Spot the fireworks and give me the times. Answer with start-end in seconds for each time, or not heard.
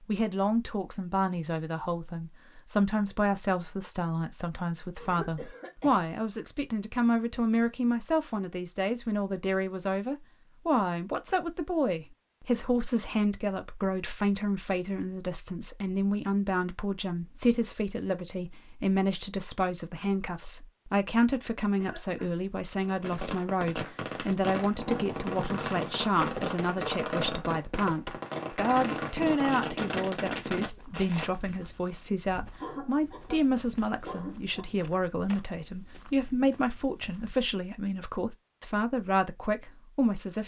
22.9-31.7.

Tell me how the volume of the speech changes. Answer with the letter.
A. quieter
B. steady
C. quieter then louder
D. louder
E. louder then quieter
B.